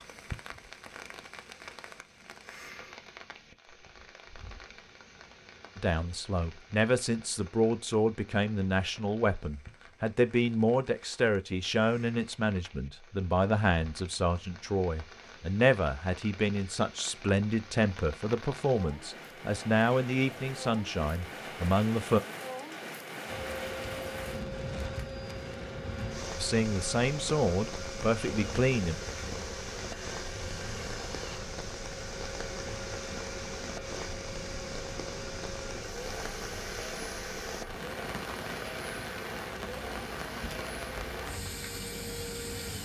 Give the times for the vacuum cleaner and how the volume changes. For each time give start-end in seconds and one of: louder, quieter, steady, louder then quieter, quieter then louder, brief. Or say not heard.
23.2-42.8 steady.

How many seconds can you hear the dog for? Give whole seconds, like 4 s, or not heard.
not heard.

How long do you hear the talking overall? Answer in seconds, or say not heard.
19 s.